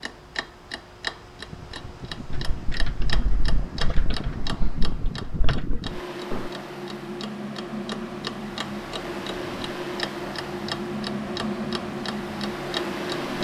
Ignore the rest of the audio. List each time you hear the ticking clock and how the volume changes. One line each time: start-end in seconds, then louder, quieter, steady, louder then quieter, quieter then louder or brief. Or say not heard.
0.0-13.3 quieter then louder.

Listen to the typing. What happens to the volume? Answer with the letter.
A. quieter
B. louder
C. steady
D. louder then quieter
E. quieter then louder
E.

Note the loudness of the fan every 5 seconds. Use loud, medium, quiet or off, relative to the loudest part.
medium, loud, loud.